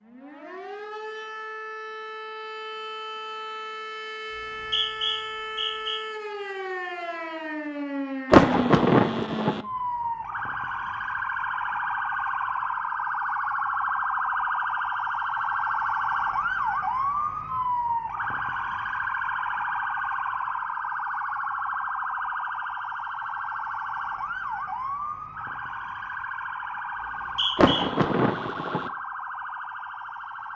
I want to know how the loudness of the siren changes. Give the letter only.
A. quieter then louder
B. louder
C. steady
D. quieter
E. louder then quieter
E.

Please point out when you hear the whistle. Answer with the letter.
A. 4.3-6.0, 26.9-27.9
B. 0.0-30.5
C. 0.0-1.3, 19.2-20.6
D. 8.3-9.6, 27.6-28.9
A.